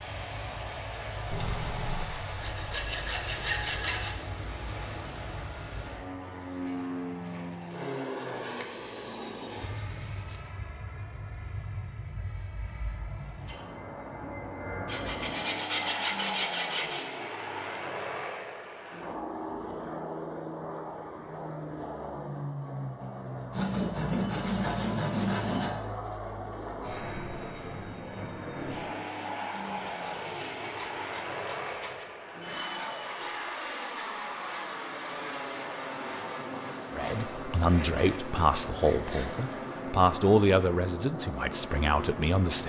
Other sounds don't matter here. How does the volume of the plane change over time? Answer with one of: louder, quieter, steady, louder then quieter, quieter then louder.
steady.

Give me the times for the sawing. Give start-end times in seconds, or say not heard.
1.3-4.2, 8.3-10.4, 14.8-17.1, 23.5-25.8, 29.6-32.1, 37.6-39.5.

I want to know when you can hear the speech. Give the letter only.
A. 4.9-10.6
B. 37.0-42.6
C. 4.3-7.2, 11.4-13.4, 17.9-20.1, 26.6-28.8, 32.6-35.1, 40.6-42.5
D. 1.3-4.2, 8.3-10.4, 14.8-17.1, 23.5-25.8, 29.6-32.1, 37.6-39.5
B.